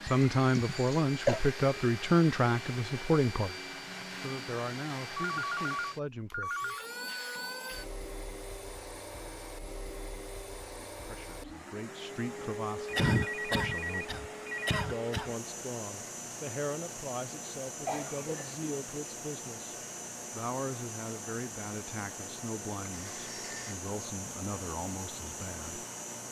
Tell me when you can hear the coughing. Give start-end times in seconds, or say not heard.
0.1-1.4, 12.9-15.3, 17.9-18.6.